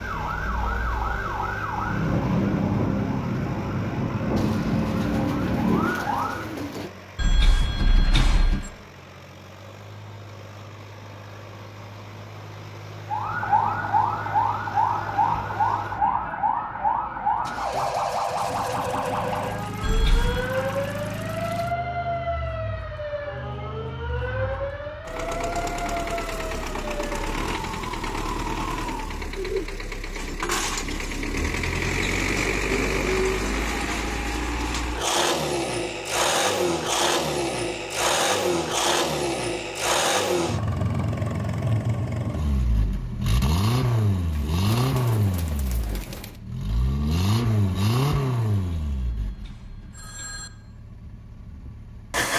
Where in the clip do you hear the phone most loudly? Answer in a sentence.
The volume of the phone peaks at 8 seconds.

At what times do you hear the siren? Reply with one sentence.
The siren can be heard from 0.0 to 6.4 s and from 13.1 to 29.2 s.